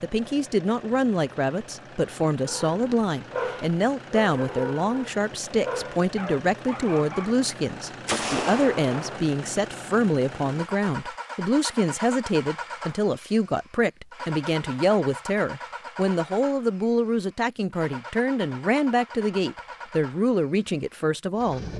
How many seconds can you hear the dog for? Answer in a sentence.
You can hear the dog for 5 seconds altogether.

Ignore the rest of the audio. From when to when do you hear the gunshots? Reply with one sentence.
You can hear the gunshots from 8.1 to 9.2 s.